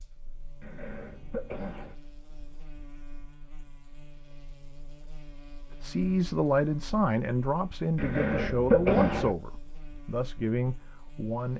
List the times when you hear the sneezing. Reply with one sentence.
You can hear the sneezing from 0.6 to 1.9 s and from 8.0 to 9.3 s.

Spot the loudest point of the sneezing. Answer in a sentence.
The volume of the sneezing peaks at 9 seconds.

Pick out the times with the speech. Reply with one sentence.
You can hear the speech from 5.8 to 11.5 s.